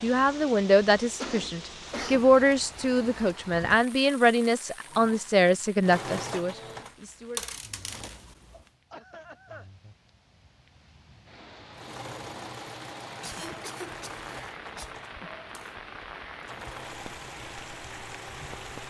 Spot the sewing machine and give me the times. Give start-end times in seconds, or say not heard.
4.8-8.6, 11.7-18.8.